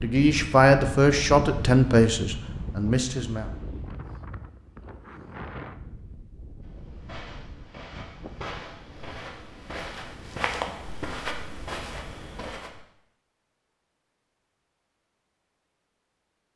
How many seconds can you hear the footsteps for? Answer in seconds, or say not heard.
6 s.